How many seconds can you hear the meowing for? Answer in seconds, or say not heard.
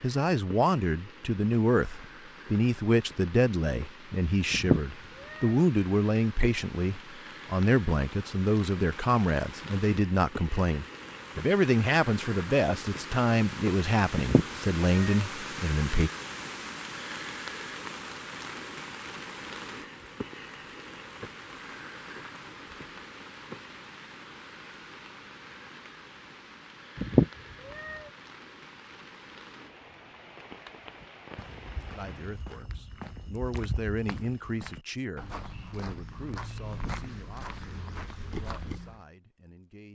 3 s.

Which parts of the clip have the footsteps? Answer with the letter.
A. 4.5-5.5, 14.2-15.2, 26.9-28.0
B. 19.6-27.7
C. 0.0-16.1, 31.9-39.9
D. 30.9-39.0
D.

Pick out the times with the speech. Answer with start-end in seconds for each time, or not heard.
0.0-16.1, 31.9-39.9.